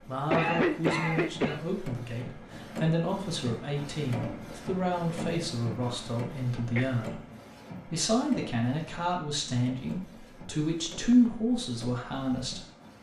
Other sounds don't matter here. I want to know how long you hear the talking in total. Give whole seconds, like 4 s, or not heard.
12 s.